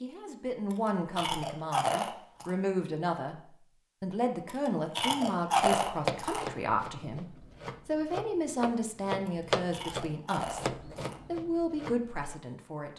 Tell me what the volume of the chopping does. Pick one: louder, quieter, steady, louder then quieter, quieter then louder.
louder then quieter.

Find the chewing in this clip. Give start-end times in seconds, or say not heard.
0.7-2.5, 4.5-6.5, 9.2-11.2.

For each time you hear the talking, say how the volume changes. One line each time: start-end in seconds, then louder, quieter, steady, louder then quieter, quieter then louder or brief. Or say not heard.
0.0-12.9 steady.